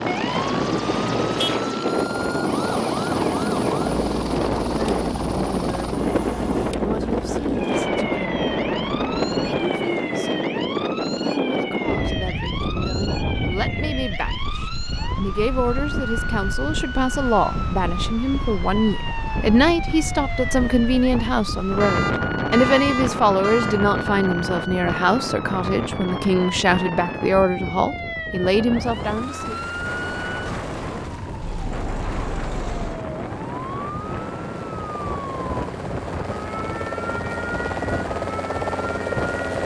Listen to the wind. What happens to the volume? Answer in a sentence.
The loudness of the wind goes down.